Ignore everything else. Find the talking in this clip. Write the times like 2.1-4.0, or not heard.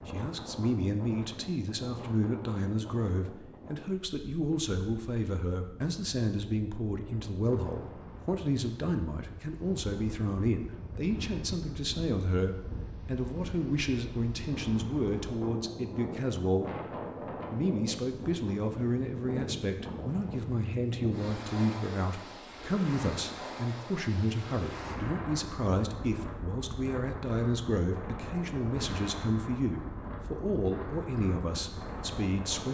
0.1-32.6.